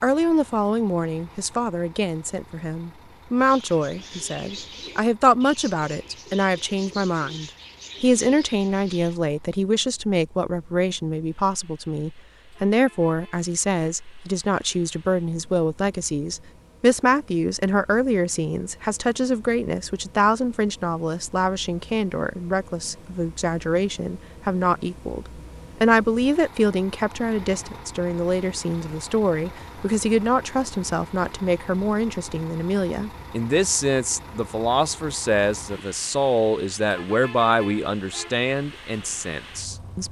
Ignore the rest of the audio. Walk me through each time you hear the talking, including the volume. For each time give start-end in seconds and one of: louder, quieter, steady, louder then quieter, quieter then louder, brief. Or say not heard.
0.0-40.0 steady.